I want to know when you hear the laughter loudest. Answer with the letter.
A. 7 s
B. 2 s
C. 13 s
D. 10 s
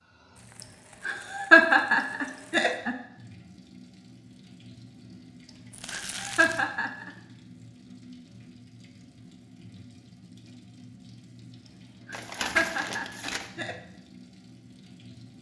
B.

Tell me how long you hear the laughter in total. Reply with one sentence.
You can hear the laughter for 5 seconds altogether.